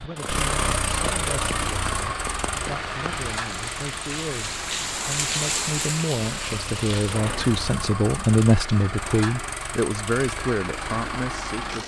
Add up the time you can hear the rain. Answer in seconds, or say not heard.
8 s.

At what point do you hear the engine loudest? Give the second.
1 s.